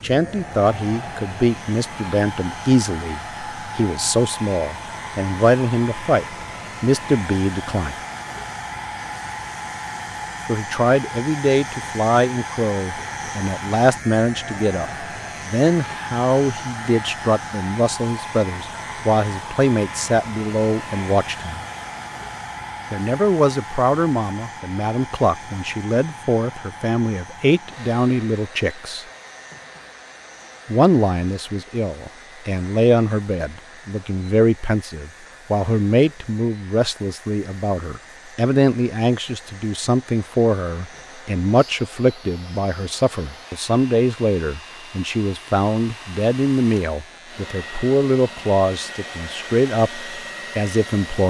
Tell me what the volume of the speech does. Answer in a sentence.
The loudness of the speech stays about the same.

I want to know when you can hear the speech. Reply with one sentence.
The speech can be heard from 0.0 to 8.0 s, from 10.4 to 21.6 s, from 22.9 to 29.1 s and from 30.6 to 51.2 s.